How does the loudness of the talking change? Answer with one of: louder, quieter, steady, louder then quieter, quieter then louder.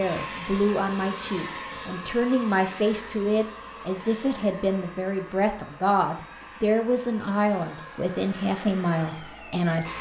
steady.